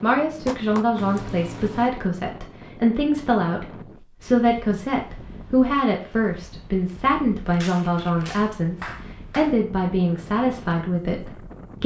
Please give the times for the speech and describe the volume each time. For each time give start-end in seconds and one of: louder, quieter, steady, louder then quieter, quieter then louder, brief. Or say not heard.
0.0-11.8 steady.